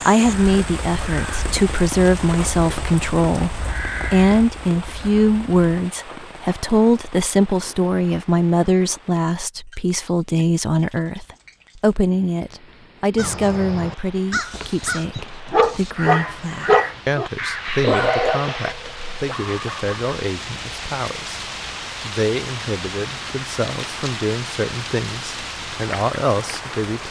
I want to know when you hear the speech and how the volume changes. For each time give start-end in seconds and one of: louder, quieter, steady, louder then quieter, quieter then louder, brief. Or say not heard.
0.1-27.0 quieter.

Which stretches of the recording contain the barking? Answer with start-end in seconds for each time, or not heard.
15.5-20.1.